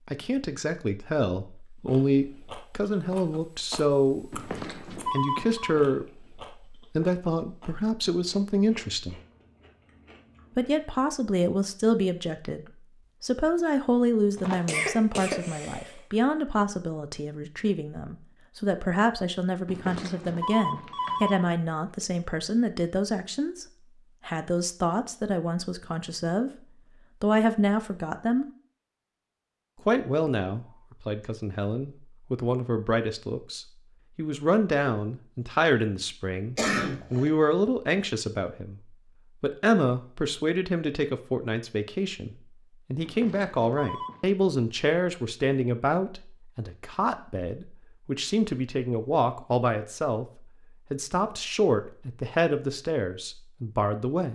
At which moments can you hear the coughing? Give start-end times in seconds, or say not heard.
14.3-16.0, 36.5-37.3.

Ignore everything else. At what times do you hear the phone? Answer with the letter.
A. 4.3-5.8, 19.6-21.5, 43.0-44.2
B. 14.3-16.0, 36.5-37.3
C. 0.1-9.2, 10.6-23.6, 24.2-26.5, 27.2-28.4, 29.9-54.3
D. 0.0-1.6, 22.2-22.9
A.